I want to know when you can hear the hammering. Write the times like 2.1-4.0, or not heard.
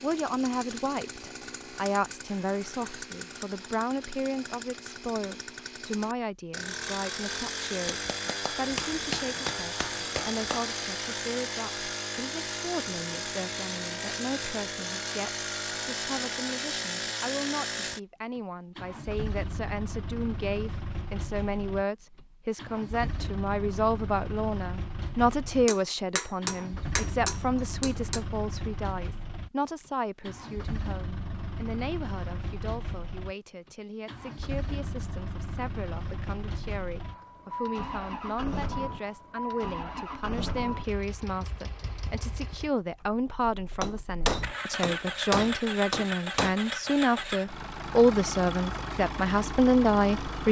7.9-10.7, 25.6-28.2, 43.8-46.5.